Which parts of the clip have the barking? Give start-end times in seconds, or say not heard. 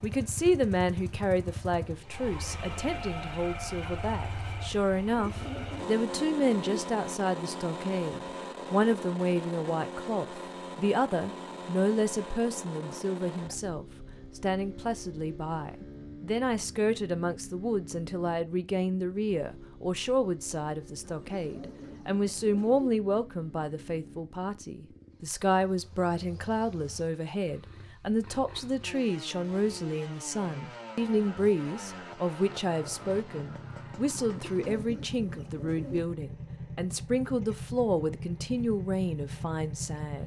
not heard.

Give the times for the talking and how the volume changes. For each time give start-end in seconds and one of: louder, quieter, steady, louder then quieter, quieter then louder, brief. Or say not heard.
0.0-40.2 steady.